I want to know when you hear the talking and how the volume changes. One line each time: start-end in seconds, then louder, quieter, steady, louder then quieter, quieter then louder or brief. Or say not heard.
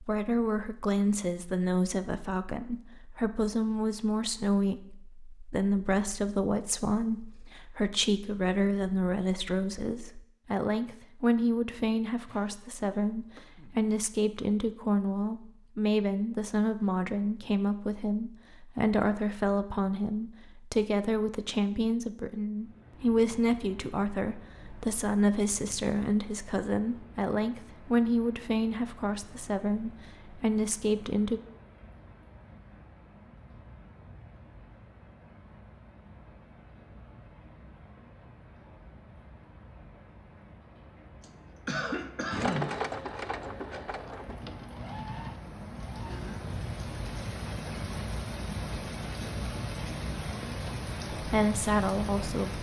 0.0-31.4 steady
51.1-52.5 brief.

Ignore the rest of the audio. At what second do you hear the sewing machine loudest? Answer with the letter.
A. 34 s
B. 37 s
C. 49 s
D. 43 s
D.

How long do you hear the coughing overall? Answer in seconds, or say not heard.
3 s.